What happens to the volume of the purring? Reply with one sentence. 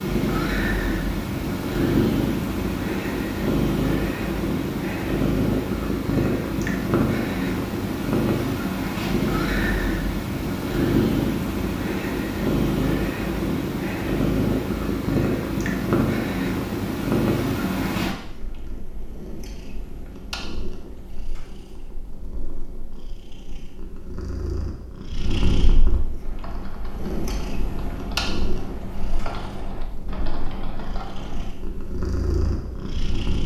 The volume of the purring goes down.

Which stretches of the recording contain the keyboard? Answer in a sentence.
You can hear the keyboard from 26.2 to 31.5 s.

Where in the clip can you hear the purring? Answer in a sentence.
You can hear the purring from 0.0 to 33.4 s.